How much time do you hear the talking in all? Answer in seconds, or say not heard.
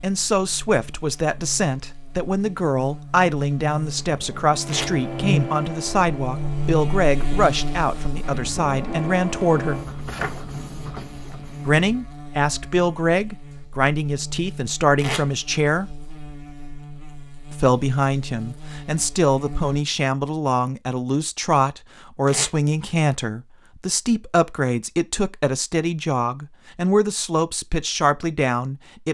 26 s.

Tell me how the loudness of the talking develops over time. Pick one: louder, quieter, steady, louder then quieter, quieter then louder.
steady.